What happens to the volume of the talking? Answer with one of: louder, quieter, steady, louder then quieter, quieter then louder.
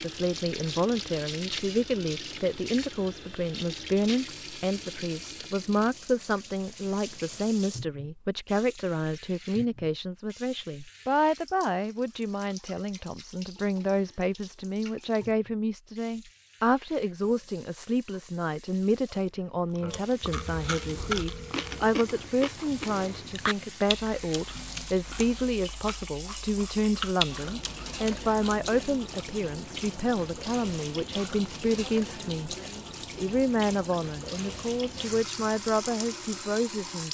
steady.